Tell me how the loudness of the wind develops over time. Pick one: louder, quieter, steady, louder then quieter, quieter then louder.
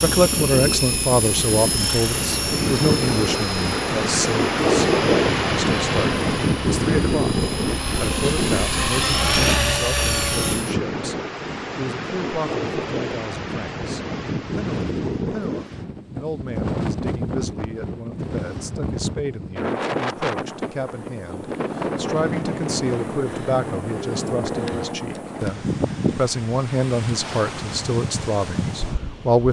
quieter.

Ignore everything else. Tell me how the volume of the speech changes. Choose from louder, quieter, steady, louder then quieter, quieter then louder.
quieter then louder.